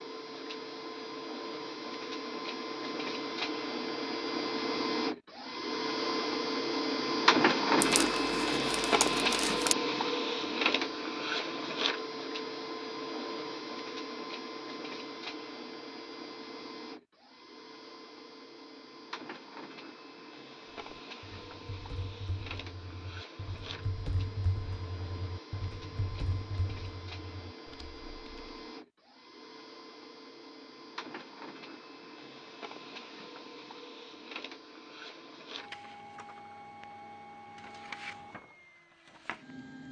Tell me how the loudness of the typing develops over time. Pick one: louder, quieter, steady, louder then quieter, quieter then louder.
louder then quieter.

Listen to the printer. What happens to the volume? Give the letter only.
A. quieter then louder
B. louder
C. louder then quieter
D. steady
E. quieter
E.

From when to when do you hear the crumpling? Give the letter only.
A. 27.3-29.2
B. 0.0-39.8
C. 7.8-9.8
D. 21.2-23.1
C.